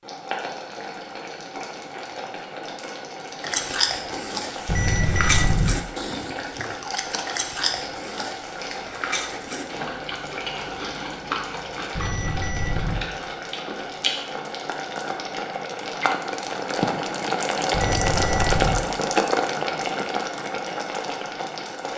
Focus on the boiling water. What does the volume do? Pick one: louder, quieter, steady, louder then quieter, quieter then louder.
louder.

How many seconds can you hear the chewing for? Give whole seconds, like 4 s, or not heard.
11 s.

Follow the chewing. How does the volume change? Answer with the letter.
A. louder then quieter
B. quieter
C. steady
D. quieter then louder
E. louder
B.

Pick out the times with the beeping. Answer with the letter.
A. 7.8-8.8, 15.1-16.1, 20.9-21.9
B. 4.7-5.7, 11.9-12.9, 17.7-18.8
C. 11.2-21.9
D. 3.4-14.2
B.